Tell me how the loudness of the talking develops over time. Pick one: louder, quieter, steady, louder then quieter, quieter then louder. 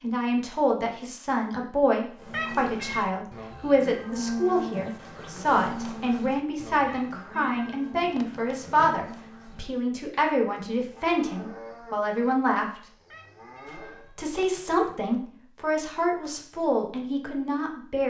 steady.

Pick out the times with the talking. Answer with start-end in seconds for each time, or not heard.
0.0-12.8, 13.8-18.0.